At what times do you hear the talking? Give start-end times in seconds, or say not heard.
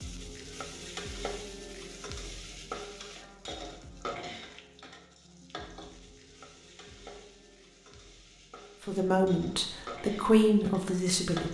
8.8-11.5.